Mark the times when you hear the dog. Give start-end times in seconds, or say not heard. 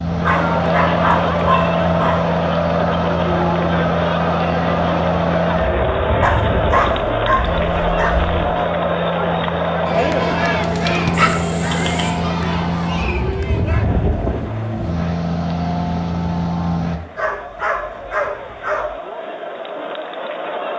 0.2-2.4, 6.2-8.7, 11.1-12.1, 17.1-18.9.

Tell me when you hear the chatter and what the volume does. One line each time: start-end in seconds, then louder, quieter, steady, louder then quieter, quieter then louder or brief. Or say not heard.
0.0-20.7 quieter.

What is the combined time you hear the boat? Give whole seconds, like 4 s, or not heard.
17 s.